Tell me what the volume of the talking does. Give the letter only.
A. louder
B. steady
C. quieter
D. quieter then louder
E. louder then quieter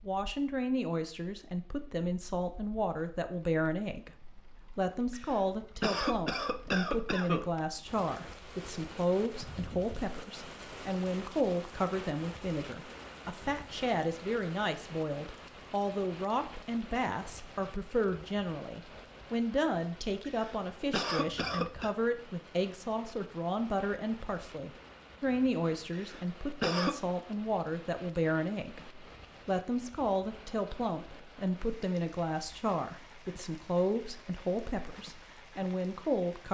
B.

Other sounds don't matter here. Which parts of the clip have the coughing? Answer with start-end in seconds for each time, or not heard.
5.1-7.5, 20.2-21.9, 25.9-27.0.